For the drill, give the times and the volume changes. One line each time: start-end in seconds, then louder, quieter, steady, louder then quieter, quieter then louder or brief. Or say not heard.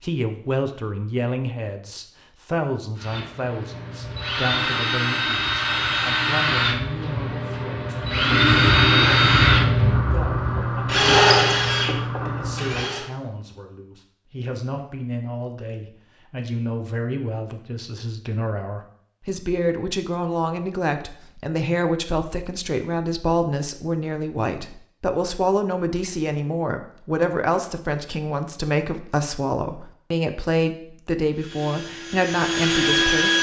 3.0-13.1 louder
31.4-33.3 brief.